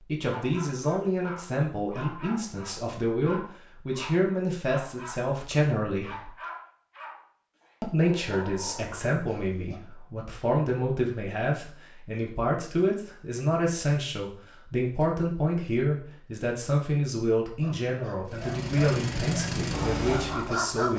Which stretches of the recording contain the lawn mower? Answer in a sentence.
The lawn mower can be heard from 18.2 to 20.6 s.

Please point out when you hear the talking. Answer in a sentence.
The talking can be heard from 0.1 to 6.3 s and from 7.8 to 20.9 s.